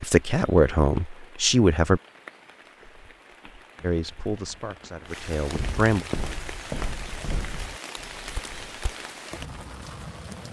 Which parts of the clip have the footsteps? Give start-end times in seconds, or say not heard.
2.6-8.9.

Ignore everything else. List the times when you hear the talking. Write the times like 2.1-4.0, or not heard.
0.0-2.0, 3.8-6.0.